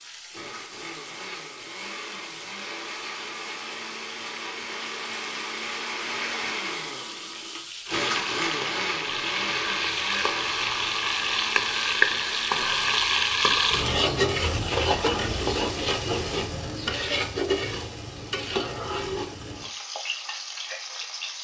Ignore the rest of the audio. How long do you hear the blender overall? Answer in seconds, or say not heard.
13 s.